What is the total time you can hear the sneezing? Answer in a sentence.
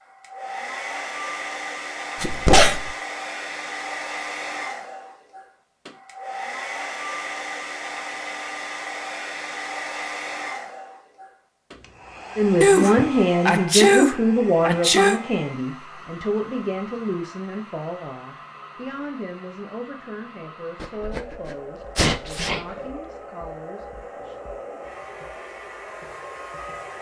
You can hear the sneezing for 5 seconds altogether.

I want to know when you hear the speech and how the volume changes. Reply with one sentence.
You can hear the speech from 12.3 to 24.4 s, getting quieter.